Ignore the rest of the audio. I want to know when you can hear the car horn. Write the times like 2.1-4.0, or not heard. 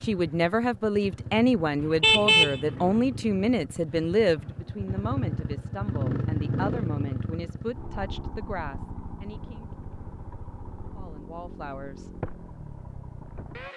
1.8-3.2.